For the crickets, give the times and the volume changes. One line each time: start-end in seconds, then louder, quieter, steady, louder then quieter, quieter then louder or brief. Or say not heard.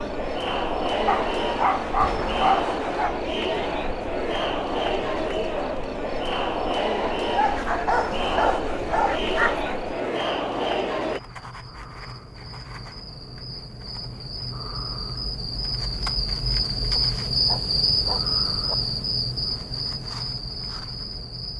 0.0-21.5 louder.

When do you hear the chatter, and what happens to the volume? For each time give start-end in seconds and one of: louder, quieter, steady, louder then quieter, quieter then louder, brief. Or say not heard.
0.0-11.2 steady.